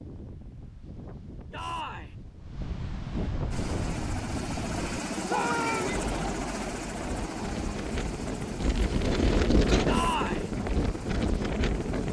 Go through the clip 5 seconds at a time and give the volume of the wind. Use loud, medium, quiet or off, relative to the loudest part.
medium, loud, loud.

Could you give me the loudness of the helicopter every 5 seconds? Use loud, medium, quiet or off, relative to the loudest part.
loud, loud, medium.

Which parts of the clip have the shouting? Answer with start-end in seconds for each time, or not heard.
1.5-2.1, 5.2-6.0, 9.8-10.5.